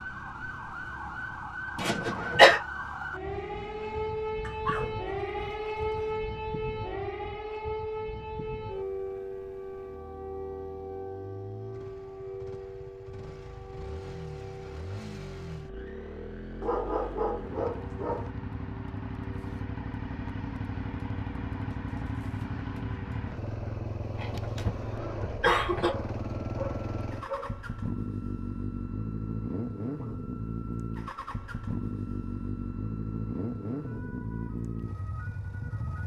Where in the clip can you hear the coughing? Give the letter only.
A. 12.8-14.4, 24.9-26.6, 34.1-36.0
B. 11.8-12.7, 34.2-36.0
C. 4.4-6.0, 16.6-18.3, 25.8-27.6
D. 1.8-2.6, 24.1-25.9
D.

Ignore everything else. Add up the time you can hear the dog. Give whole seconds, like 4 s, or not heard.
5 s.